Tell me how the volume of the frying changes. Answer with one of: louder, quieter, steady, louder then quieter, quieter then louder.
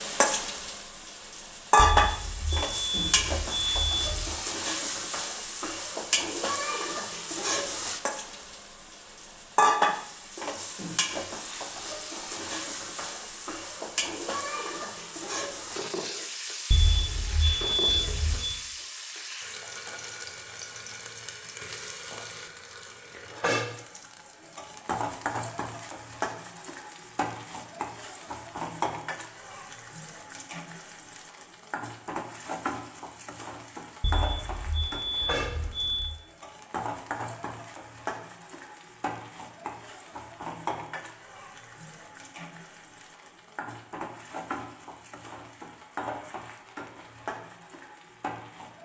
quieter.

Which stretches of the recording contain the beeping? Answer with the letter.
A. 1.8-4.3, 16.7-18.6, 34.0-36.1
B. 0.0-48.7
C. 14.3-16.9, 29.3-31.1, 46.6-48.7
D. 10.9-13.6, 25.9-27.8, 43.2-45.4
A.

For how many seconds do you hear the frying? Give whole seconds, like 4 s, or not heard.
49 s.